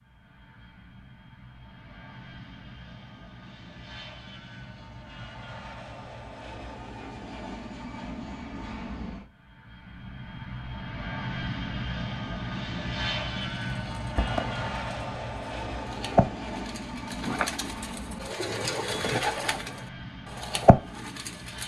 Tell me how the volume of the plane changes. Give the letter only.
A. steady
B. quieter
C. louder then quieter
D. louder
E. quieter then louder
C.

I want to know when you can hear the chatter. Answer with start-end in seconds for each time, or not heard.
not heard.